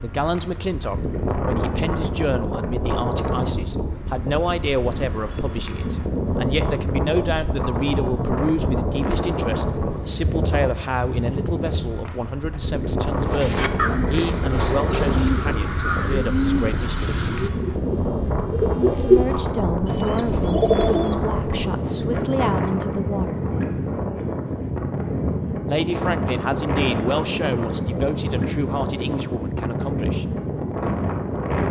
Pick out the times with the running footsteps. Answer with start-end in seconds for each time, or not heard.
not heard.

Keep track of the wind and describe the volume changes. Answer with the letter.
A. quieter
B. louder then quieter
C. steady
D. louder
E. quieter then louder
C.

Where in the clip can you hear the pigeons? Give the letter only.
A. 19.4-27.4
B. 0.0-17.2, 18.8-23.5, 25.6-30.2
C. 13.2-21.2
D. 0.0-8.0
C.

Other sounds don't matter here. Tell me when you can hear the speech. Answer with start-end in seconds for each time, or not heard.
0.0-17.2, 18.8-23.5, 25.6-30.2.